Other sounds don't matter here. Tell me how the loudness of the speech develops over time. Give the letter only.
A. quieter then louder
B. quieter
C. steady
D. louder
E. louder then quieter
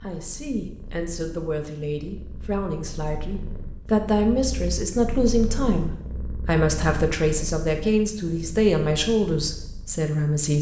D.